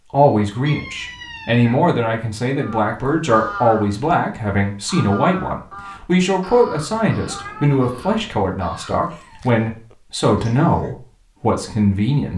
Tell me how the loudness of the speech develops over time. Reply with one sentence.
The loudness of the speech stays about the same.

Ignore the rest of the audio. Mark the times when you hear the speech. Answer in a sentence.
The speech can be heard from 0.1 to 12.3 s.